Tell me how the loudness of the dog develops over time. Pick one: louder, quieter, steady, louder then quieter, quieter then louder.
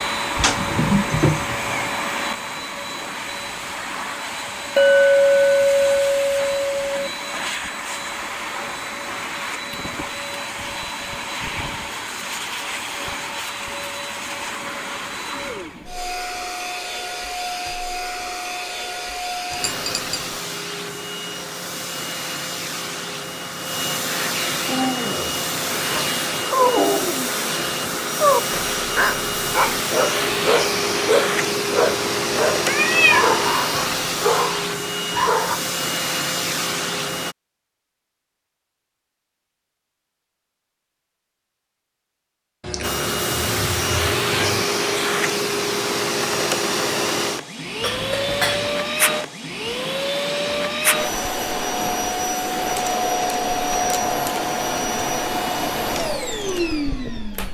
steady.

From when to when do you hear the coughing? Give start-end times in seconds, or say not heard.
not heard.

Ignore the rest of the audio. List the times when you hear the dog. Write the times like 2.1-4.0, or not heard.
24.6-35.6.